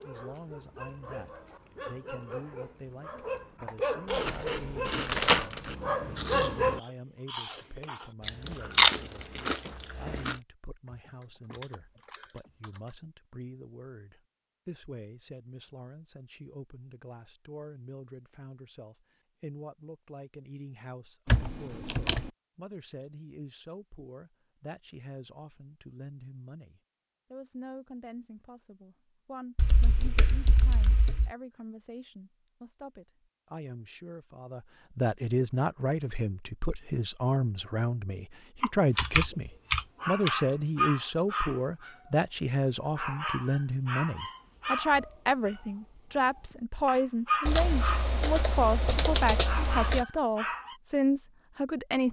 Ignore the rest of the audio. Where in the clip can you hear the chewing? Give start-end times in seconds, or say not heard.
4.0-10.3.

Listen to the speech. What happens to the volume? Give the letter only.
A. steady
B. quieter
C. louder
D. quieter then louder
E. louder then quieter
C.